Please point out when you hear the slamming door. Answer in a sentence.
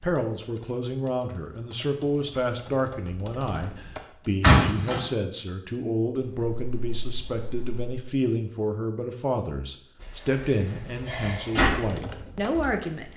The slamming door can be heard from 4.4 to 5.0 s and from 10.0 to 11.7 s.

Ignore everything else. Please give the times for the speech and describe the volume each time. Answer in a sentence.
You can hear the speech from 0.0 to 13.1 s, at a steady volume.